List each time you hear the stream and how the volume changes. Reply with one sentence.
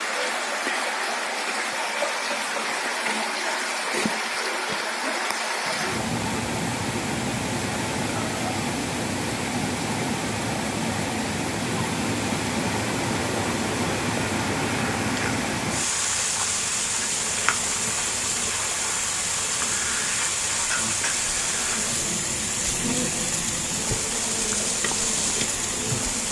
You can hear the stream from 0.0 to 26.2 s, at a steady volume.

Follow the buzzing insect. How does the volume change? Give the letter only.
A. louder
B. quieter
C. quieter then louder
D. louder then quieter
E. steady
E.